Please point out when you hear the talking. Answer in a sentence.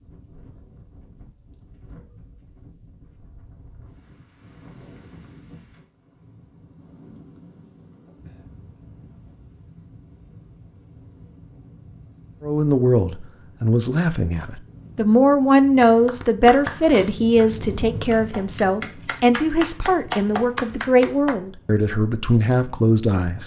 The talking can be heard from 12.4 to 23.4 s.